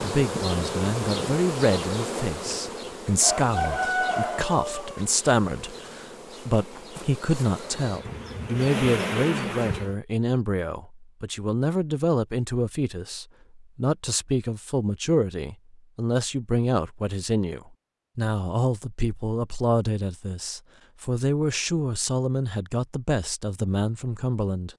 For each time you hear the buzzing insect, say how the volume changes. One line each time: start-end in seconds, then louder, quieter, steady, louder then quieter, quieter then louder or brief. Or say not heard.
0.0-9.9 quieter then louder.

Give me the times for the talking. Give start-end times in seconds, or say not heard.
0.0-24.7.